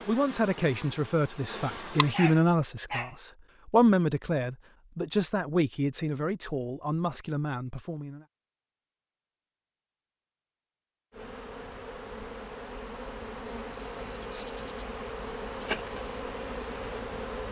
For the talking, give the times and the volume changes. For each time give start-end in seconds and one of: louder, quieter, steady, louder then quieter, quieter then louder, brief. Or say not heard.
0.1-8.2 louder then quieter.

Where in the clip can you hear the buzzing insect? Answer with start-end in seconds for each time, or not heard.
0.0-2.2, 11.1-17.4.